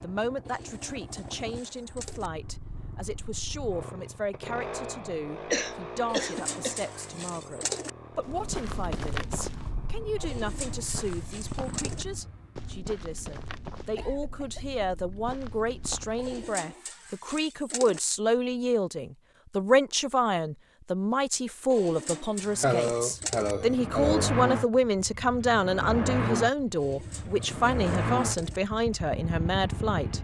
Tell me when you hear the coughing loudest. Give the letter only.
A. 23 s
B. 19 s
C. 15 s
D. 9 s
A.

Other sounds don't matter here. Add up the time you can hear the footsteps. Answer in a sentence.
The footsteps can be heard for 8 seconds in total.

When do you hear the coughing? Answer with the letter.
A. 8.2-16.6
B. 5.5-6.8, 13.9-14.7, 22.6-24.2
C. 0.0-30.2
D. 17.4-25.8
B.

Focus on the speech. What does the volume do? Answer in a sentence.
The loudness of the speech goes up.